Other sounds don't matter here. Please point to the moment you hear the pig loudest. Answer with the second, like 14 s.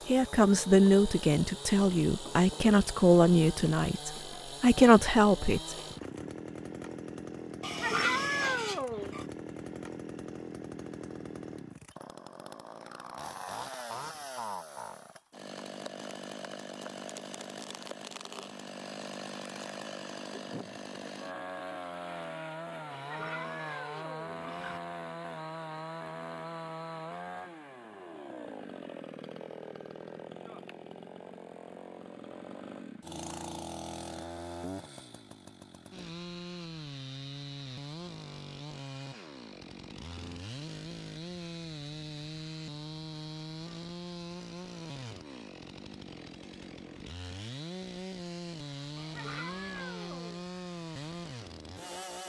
8 s.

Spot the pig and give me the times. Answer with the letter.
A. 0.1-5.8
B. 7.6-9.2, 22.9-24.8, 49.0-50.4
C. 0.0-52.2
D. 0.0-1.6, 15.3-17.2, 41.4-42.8
B.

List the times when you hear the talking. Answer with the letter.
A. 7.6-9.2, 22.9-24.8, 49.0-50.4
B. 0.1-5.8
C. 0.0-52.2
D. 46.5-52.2
B.